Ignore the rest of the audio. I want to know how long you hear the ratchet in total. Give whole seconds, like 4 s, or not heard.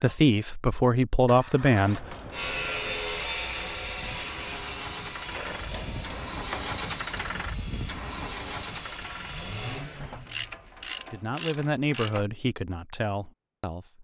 5 s.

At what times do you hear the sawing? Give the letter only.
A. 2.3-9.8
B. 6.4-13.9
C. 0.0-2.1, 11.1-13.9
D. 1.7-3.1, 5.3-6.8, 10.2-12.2
A.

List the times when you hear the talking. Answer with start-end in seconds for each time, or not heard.
0.0-2.1, 11.1-13.9.